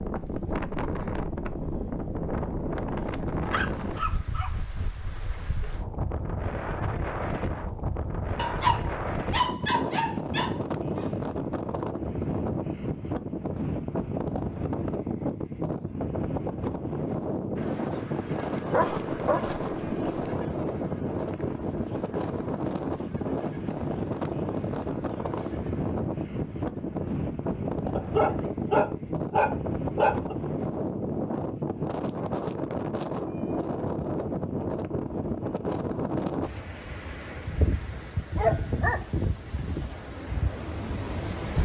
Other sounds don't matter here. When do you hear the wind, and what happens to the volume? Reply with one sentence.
You can hear the wind from 0.0 to 41.6 s, at a steady volume.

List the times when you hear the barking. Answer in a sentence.
You can hear the barking from 3.0 to 4.5 s, from 8.3 to 11.1 s, from 18.7 to 20.3 s, from 27.9 to 30.4 s and from 38.4 to 39.0 s.